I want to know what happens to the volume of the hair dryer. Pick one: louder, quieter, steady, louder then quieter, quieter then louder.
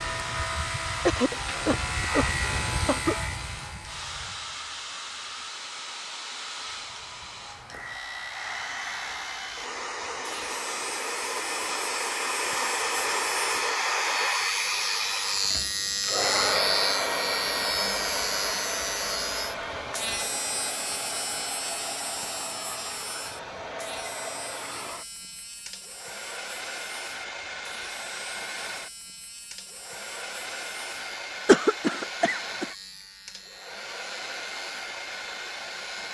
louder then quieter.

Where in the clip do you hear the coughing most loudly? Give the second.
32 s.